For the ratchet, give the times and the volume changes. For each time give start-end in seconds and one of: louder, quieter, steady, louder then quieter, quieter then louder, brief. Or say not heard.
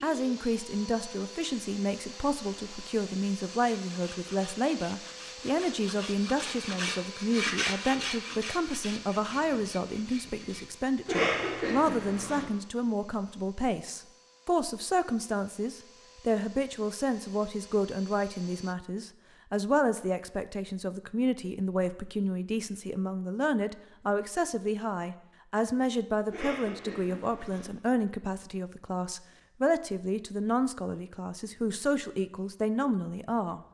not heard.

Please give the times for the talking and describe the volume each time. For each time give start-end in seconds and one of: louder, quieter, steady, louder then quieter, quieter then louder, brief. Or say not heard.
0.0-33.6 steady.